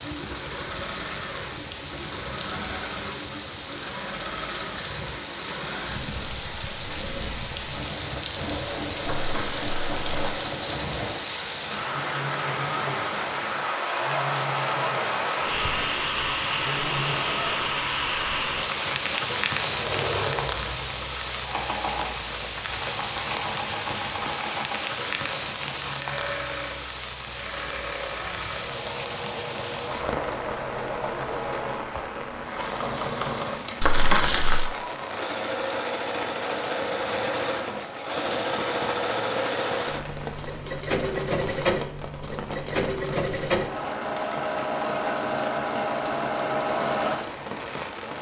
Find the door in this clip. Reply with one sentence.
You can't hear the door here.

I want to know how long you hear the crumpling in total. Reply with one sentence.
The crumpling can be heard for 2 seconds in total.